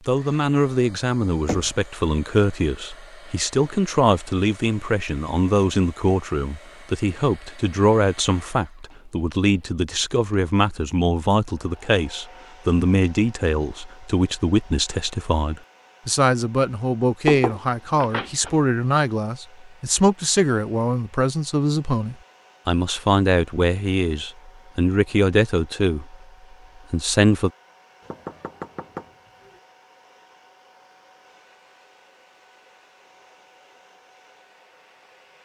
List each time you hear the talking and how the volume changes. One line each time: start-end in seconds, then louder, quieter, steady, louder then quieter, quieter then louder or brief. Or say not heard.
0.1-26.1 steady
26.9-27.5 brief.